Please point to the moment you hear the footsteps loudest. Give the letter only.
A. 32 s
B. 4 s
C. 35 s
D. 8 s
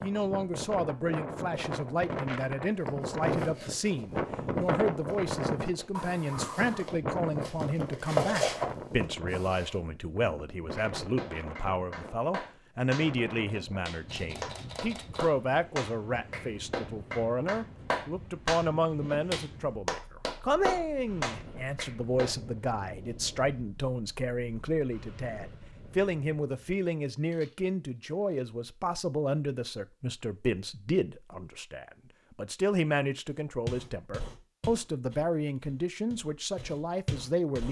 D.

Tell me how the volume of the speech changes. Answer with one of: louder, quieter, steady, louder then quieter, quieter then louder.
steady.